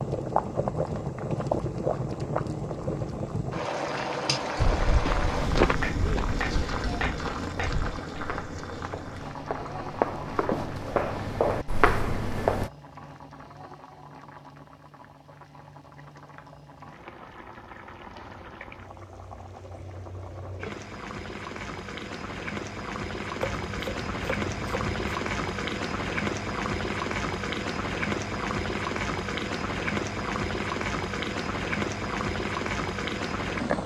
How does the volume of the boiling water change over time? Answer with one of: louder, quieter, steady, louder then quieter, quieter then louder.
quieter then louder.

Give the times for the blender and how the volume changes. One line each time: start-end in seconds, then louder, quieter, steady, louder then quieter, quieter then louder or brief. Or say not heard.
not heard.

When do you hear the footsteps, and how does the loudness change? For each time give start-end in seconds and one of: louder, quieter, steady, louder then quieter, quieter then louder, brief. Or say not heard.
4.5-12.7 quieter then louder.